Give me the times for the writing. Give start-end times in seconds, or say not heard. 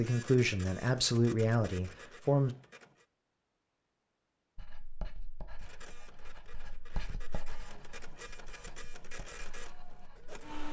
4.5-10.4.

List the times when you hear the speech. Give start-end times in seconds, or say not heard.
0.0-2.5.